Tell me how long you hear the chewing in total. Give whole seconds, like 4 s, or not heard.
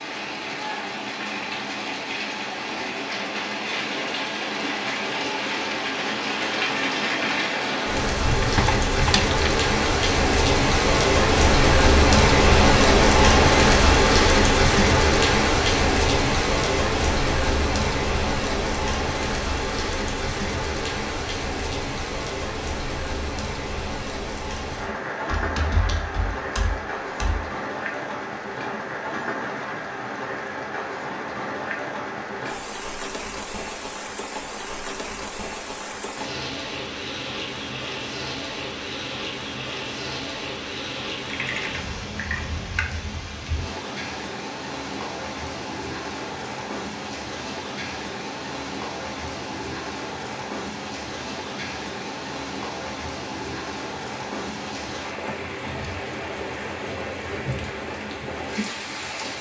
not heard.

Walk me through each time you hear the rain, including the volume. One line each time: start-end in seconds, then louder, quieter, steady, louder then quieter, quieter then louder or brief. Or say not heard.
0.0-59.3 quieter.